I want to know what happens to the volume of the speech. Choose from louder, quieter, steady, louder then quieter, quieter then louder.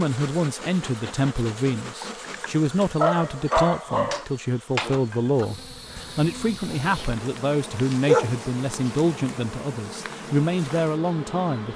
steady.